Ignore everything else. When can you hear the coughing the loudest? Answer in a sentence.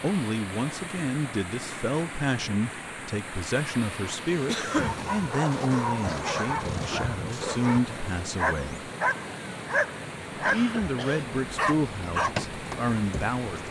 The volume of the coughing peaks at 5 seconds.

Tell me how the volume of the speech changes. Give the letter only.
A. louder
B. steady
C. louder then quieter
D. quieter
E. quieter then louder
B.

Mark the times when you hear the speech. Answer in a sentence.
The speech can be heard from 0.0 to 8.9 s and from 10.4 to 13.6 s.